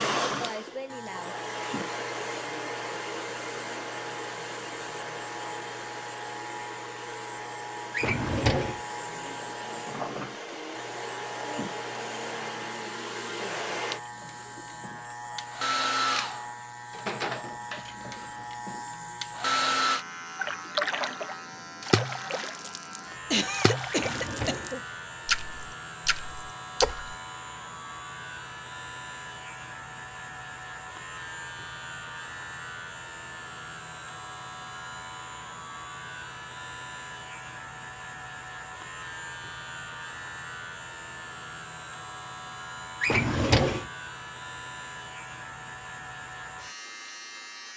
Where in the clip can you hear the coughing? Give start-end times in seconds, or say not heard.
23.3-24.8.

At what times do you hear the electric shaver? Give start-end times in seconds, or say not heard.
0.0-47.7.